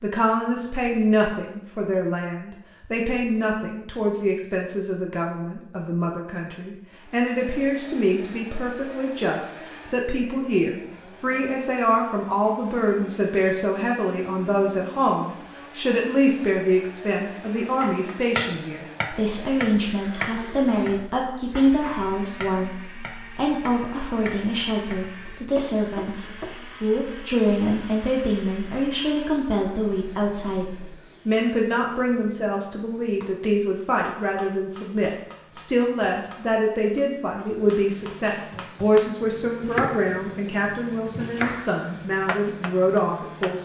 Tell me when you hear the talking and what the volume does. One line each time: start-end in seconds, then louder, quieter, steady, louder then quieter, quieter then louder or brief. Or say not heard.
0.0-43.6 steady.